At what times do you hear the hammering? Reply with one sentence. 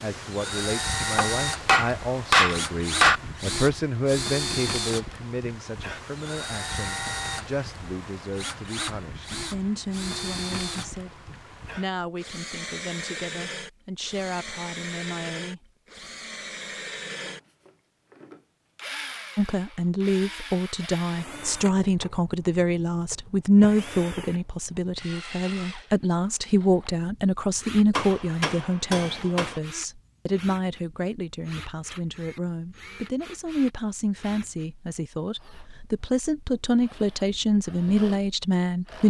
You can hear the hammering from 1.1 to 3.2 s and from 27.9 to 29.6 s.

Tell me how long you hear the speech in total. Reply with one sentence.
The speech can be heard for 35 seconds in total.